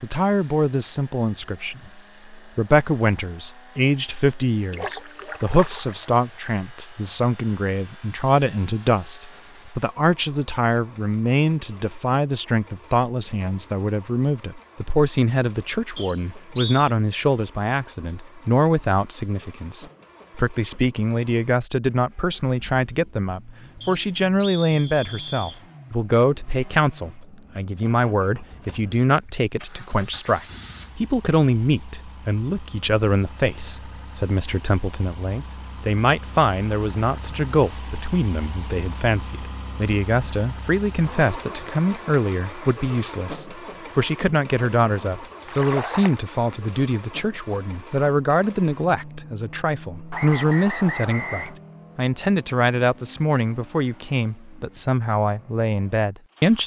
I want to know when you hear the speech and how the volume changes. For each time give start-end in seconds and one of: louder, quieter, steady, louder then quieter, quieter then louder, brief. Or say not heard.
0.0-56.6 steady.